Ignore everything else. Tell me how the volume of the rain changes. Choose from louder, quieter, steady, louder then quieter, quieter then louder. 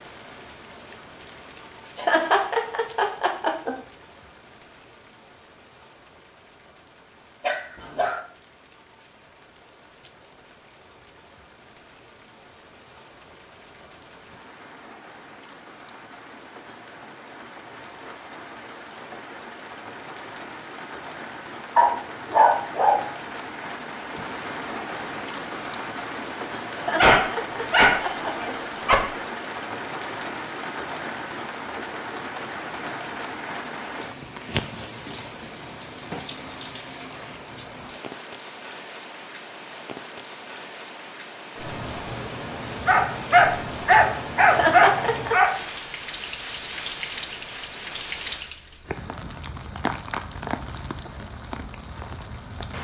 louder.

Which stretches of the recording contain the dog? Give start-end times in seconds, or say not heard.
7.4-8.2, 21.8-23.0, 26.9-28.9, 42.9-45.5.